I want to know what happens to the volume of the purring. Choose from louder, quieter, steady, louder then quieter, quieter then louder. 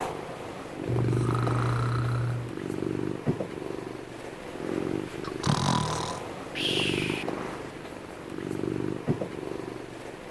steady.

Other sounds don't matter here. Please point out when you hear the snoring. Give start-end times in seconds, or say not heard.
0.8-2.5, 5.2-7.2.